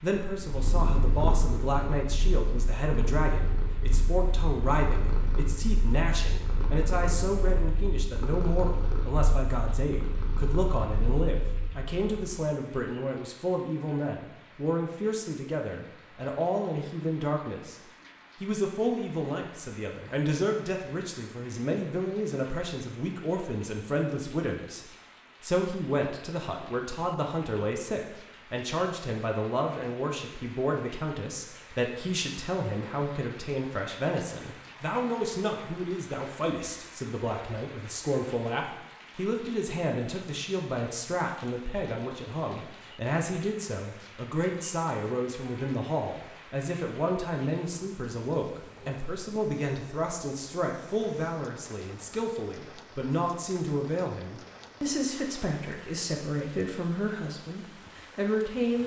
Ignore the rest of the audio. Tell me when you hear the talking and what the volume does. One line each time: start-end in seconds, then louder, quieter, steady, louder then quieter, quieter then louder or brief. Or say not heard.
0.0-58.8 steady.